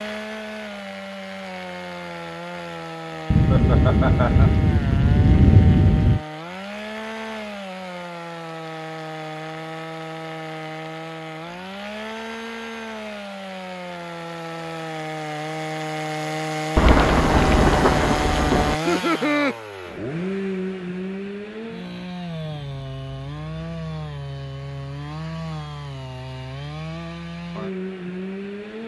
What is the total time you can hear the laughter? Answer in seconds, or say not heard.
2 s.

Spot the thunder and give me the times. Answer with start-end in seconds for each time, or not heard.
3.3-6.2, 16.8-18.8.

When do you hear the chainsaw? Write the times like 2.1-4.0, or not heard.
0.0-28.8.